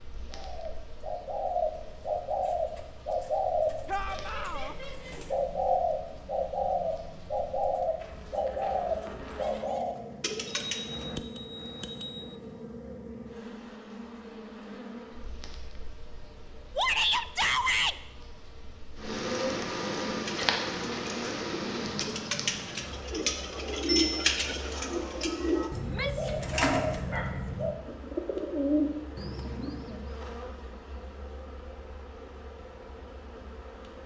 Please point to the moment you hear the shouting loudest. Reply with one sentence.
The loudest moment of the shouting is at 17 seconds.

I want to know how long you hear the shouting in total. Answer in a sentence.
The shouting can be heard for 3 seconds in total.